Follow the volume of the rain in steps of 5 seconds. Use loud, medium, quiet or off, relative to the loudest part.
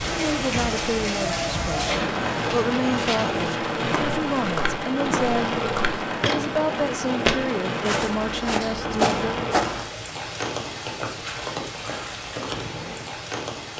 loud, loud, medium.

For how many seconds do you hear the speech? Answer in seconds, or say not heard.
9 s.